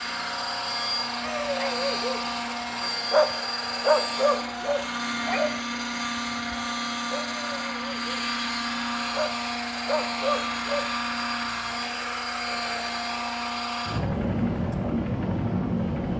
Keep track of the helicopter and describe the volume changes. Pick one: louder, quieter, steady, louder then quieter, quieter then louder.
steady.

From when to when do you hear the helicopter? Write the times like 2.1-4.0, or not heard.
0.0-16.1.